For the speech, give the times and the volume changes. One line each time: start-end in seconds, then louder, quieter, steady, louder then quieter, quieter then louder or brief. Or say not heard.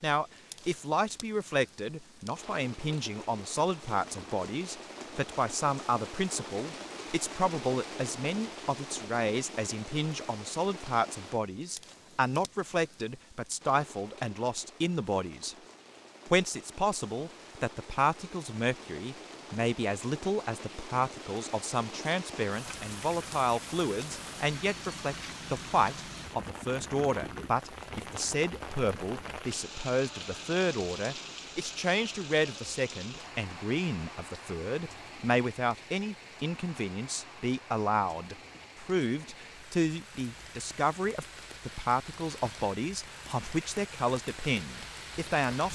0.0-15.6 steady
16.2-45.7 steady.